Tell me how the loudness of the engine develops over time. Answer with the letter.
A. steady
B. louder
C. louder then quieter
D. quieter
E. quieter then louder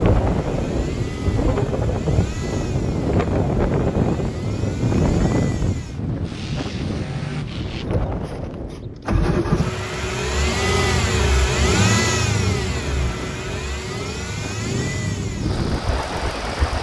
C.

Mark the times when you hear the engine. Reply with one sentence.
The engine can be heard from 0.0 to 16.7 s.